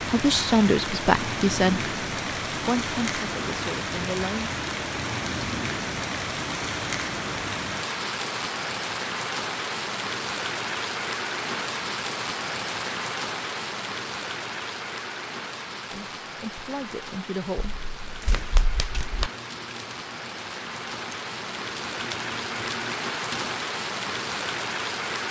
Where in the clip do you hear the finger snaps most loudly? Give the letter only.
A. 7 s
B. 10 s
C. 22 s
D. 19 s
D.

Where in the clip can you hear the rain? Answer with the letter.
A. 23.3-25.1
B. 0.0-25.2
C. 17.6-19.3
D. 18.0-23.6
B.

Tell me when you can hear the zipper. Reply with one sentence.
You can't hear the zipper here.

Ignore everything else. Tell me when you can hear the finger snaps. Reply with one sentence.
The finger snaps can be heard from 17.6 to 19.3 s.